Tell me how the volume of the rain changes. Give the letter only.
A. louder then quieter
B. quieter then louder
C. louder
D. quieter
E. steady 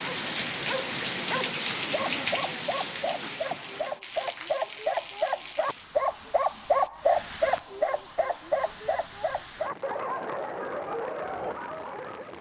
D.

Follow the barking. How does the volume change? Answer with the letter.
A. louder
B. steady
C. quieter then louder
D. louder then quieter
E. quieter
D.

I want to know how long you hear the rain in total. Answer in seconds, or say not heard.
12 s.